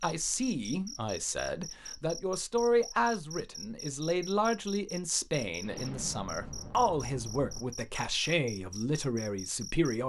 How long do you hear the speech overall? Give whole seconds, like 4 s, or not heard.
10 s.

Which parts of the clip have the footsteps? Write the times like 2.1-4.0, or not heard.
not heard.